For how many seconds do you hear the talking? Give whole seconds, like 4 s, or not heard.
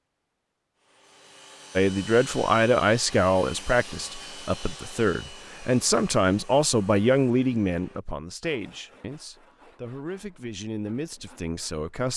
10 s.